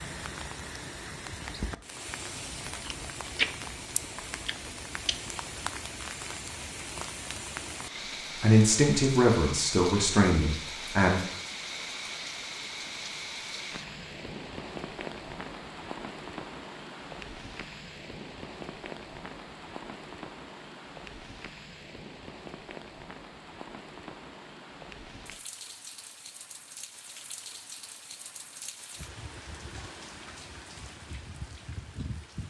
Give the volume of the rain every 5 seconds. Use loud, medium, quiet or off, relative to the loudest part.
loud, loud, loud, loud, medium, medium, medium.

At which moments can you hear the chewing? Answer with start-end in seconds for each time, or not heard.
2.7-5.4.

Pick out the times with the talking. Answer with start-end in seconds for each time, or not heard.
8.4-11.2.